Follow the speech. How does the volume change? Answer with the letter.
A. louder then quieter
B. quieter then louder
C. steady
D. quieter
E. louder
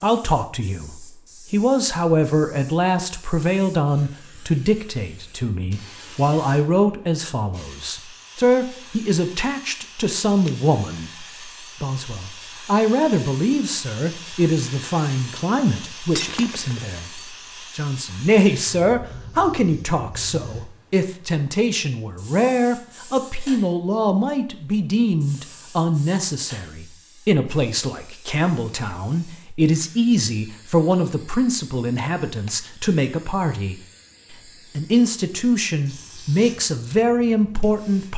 C.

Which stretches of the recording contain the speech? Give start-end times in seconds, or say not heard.
0.0-38.1.